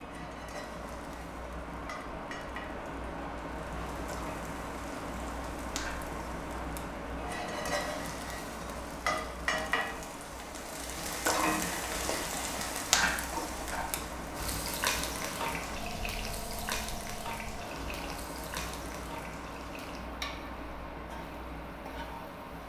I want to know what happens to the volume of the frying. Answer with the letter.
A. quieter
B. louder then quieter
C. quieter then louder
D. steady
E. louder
B.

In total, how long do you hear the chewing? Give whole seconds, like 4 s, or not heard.
not heard.